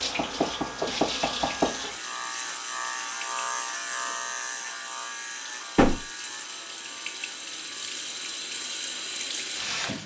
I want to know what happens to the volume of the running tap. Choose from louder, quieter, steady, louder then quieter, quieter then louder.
quieter then louder.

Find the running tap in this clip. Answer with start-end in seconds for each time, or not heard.
0.0-10.0.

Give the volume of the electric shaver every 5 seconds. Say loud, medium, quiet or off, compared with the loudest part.
loud, medium.